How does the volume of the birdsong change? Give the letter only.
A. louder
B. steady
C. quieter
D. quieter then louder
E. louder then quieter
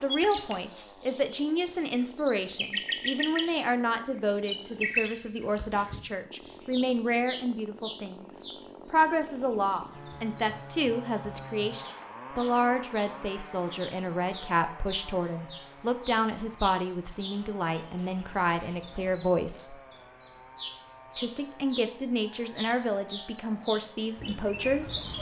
D.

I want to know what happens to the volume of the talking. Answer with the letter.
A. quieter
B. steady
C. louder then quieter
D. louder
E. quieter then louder
B.